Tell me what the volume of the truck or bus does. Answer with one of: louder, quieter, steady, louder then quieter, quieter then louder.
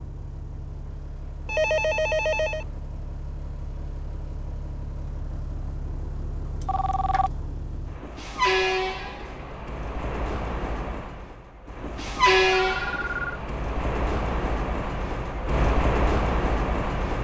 louder.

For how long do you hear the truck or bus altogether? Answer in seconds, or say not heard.
17 s.